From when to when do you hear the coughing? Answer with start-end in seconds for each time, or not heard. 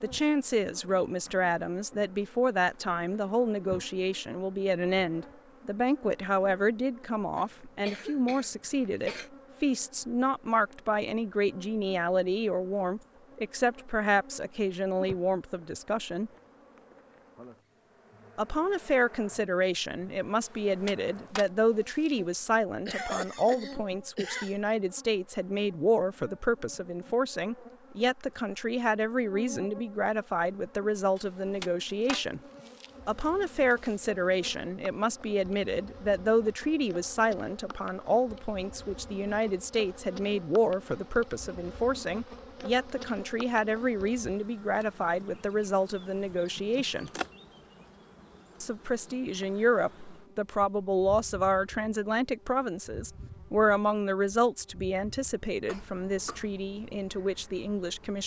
7.3-9.3, 22.9-24.6, 55.6-56.5.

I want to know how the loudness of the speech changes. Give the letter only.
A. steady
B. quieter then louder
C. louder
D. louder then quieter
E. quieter
A.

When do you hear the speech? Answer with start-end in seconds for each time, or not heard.
0.0-16.3, 18.4-32.4, 33.0-47.1, 48.6-58.2.